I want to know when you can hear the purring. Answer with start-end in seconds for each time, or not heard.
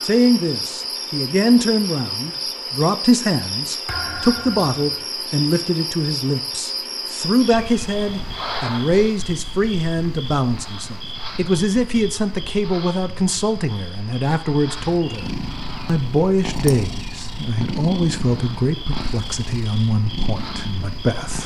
14.8-21.4.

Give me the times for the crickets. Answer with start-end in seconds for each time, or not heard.
0.0-21.4.